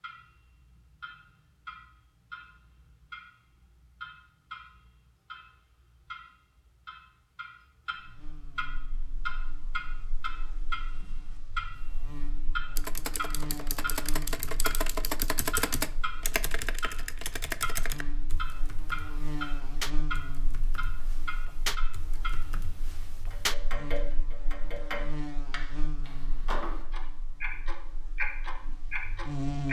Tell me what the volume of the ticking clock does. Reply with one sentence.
The volume of the ticking clock goes up.